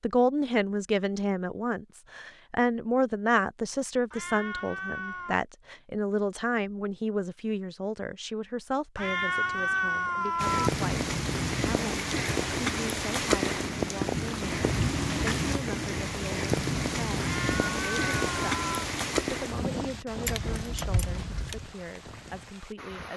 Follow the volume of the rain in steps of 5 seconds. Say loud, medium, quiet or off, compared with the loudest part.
off, off, loud, loud, quiet.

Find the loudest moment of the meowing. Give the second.
10 s.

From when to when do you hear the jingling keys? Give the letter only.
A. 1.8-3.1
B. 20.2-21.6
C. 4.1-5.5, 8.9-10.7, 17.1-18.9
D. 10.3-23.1
B.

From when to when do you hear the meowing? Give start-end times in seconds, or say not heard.
4.1-5.5, 8.9-10.7, 17.1-18.9.